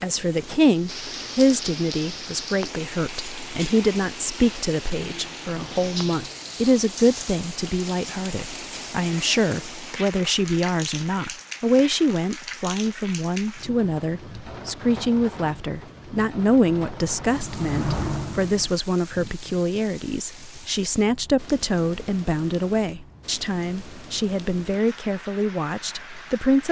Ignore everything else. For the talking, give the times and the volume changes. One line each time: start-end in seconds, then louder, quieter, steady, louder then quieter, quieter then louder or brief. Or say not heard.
0.0-26.6 steady.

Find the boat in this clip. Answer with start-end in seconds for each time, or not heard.
16.1-18.7.